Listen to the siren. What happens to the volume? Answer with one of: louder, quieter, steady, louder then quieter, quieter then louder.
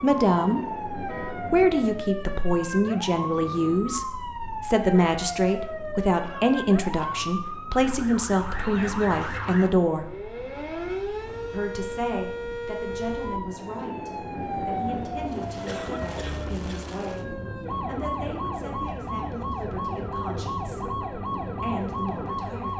steady.